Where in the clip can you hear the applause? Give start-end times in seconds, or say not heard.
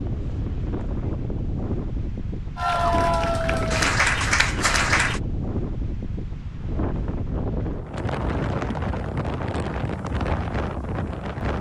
2.5-5.2.